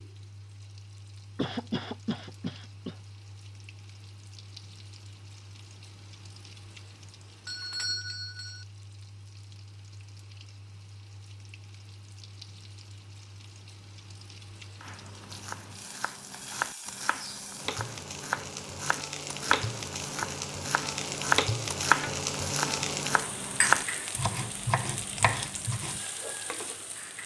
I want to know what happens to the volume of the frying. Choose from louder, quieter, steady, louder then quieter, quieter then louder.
louder.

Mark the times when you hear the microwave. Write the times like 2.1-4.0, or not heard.
not heard.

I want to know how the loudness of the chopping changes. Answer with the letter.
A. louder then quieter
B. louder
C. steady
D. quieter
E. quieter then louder
B.